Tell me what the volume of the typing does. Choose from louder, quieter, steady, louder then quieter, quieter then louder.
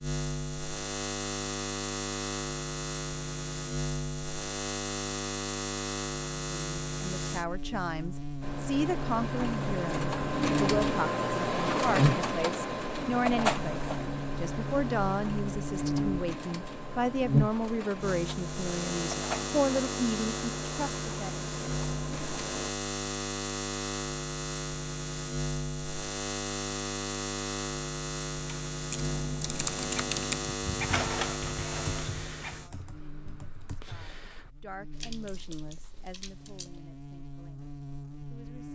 quieter.